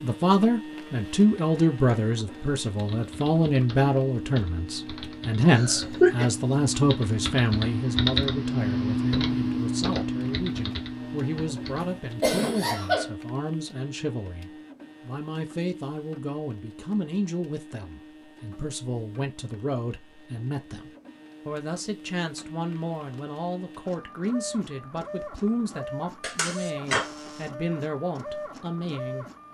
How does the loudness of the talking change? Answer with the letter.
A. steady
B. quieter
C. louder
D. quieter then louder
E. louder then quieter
B.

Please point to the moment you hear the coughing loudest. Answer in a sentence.
The loudest moment of the coughing is at 6 seconds.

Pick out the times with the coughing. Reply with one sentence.
The coughing can be heard from 5.5 to 6.2 s, from 11.8 to 13.1 s and from 26.2 to 27.1 s.